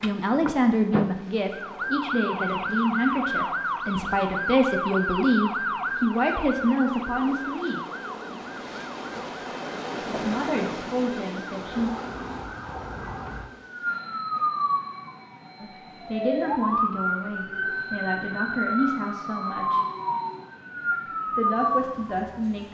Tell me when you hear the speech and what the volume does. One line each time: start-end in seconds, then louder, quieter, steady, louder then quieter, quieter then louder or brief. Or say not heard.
0.0-7.8 steady
10.1-11.9 brief
15.6-19.8 quieter then louder
21.4-22.6 brief.